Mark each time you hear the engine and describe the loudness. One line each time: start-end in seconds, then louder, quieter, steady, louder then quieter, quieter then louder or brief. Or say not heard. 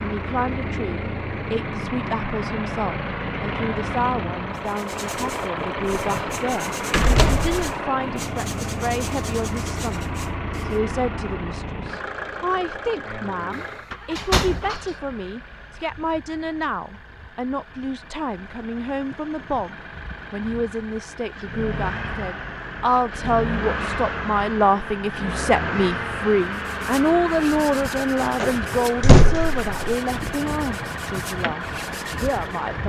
0.0-32.8 quieter then louder.